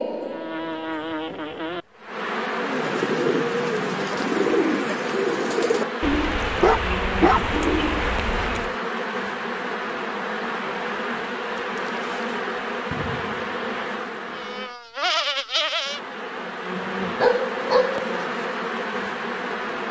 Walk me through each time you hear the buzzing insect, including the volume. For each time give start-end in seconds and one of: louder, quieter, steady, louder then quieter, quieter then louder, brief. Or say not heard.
0.0-19.8 steady.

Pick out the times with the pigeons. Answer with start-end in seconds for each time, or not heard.
2.6-8.8.